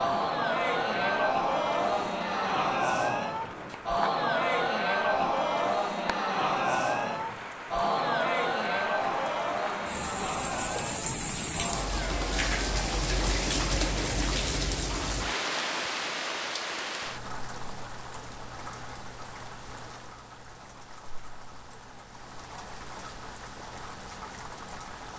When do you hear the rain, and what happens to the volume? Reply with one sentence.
The rain can be heard from 0.0 to 25.1 s, getting louder then quieter.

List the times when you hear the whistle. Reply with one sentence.
The whistle can't be heard in this clip.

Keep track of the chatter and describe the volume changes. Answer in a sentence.
The loudness of the chatter goes down.